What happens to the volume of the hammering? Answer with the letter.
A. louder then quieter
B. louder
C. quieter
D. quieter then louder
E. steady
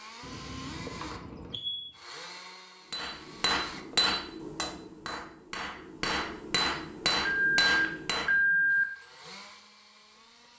D.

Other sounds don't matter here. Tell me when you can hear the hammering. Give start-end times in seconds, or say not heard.
2.9-8.3.